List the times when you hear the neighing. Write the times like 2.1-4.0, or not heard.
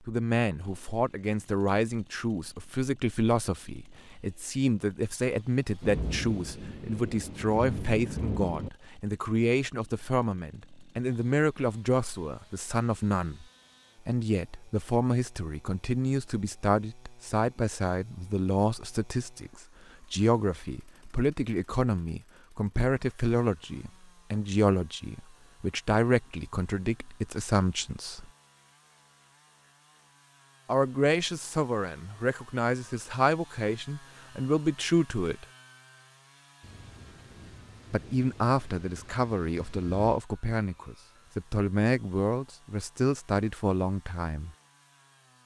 not heard.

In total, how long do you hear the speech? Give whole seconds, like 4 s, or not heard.
39 s.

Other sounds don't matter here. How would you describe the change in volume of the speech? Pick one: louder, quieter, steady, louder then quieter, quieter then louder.
steady.